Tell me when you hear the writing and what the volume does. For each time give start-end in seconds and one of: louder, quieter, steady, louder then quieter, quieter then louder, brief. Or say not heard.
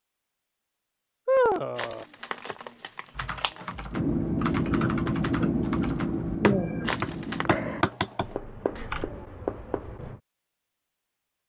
3.9-10.2 quieter.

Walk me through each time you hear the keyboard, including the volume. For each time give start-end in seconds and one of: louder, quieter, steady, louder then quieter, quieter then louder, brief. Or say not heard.
3.1-9.1 louder.